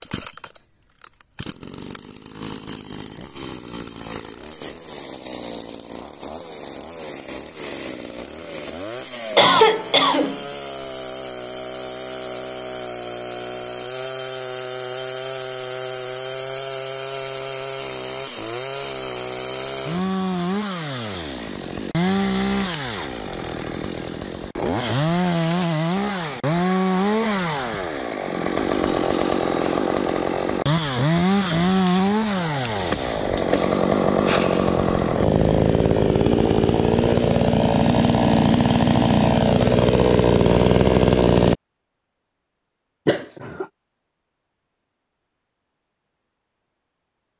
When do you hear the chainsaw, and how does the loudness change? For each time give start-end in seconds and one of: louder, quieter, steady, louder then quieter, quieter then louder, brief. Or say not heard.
0.0-41.5 louder.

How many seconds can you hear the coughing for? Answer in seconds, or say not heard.
2 s.